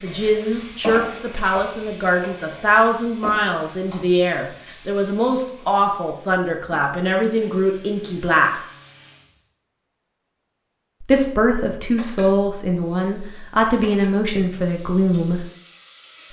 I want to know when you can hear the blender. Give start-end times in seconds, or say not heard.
not heard.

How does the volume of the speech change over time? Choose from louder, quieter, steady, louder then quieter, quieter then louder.
steady.